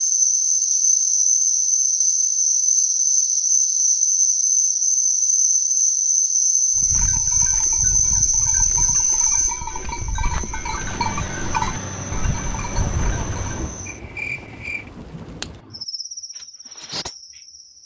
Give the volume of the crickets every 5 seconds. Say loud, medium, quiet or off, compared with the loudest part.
loud, loud, quiet, quiet.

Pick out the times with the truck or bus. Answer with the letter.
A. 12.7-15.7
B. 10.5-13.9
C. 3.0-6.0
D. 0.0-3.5
B.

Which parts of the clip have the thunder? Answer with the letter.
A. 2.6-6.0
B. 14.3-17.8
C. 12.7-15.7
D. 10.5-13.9
C.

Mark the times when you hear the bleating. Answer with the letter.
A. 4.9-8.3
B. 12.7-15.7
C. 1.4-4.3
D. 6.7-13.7
D.